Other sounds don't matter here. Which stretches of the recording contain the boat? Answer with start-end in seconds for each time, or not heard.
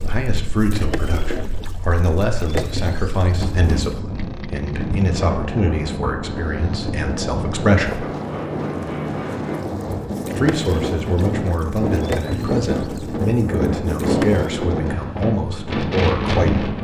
0.0-14.7.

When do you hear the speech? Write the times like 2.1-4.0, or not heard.
0.0-8.1, 10.3-16.7.